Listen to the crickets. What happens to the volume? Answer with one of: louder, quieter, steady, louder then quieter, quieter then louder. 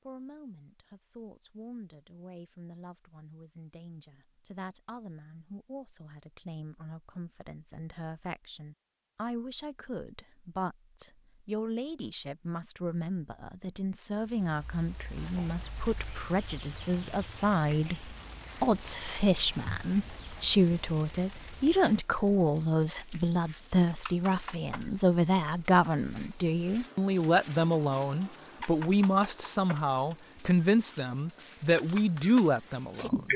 steady.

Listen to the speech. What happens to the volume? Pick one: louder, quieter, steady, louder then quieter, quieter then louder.
louder.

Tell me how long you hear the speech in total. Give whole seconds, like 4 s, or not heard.
33 s.